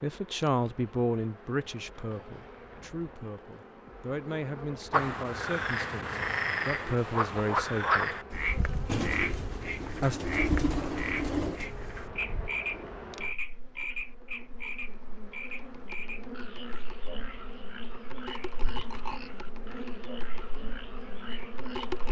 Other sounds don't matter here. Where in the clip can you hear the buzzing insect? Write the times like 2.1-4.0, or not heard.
0.0-22.0.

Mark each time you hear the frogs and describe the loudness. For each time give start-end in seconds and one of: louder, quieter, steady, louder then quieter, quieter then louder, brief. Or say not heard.
4.9-22.0 quieter.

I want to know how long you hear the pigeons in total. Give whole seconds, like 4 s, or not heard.
3 s.